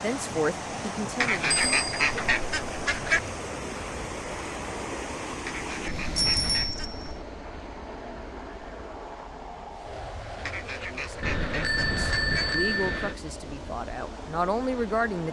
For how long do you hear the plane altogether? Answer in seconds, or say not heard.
15 s.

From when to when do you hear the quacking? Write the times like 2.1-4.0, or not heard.
1.2-3.2, 5.5-7.0, 10.4-12.4.